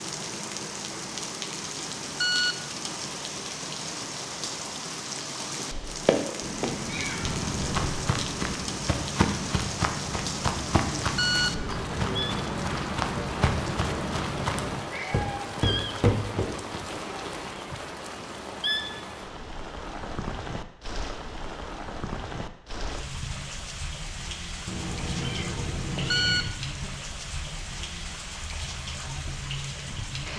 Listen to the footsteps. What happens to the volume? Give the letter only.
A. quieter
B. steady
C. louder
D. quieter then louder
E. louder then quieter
B.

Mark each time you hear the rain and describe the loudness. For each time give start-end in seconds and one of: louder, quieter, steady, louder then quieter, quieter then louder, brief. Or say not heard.
0.0-30.3 steady.